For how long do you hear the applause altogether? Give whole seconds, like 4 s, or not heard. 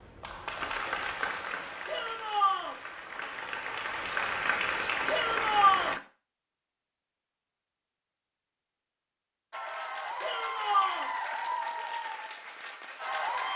10 s.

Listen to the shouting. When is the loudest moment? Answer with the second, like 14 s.
6 s.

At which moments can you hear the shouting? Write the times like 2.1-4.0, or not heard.
1.9-2.8, 5.0-6.0, 10.2-11.1.